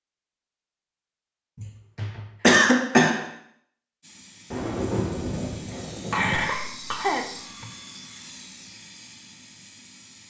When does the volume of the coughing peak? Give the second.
3 s.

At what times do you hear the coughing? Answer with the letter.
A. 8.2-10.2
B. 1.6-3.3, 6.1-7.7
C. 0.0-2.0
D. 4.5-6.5
B.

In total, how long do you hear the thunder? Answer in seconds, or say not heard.
2 s.